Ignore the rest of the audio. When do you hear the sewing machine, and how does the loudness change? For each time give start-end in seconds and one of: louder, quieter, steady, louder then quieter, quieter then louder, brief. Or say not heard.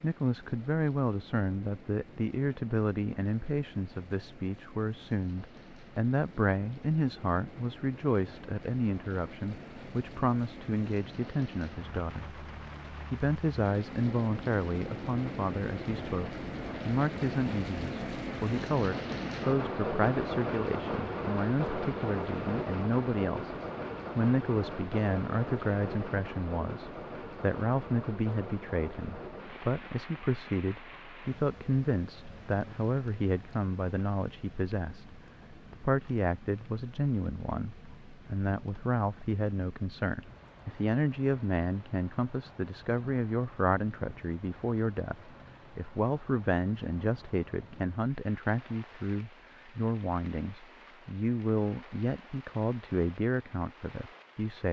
not heard.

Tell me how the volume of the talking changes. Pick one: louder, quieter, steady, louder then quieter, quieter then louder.
steady.